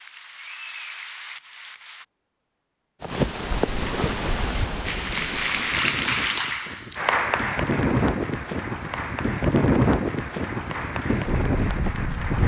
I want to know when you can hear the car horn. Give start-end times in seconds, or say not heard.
not heard.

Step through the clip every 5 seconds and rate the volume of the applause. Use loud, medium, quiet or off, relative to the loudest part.
medium, loud, medium.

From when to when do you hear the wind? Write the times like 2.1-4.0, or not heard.
3.0-12.4.